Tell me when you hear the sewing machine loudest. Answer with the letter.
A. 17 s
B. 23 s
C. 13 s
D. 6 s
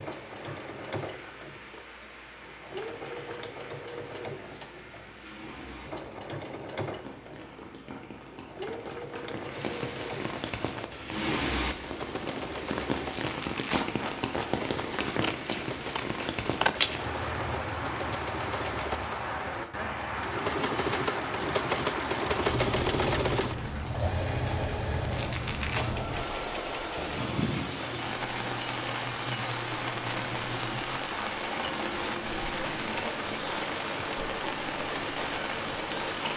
B.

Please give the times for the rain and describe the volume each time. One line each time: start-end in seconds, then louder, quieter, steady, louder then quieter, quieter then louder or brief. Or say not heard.
0.0-36.3 louder.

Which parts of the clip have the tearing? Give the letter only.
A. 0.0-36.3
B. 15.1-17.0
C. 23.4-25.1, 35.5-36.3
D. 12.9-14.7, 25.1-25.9
D.